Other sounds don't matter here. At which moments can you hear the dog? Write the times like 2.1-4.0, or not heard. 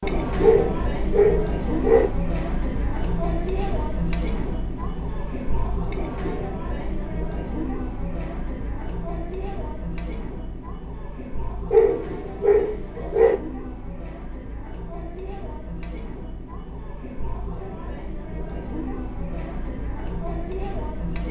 0.4-2.1, 11.7-13.3.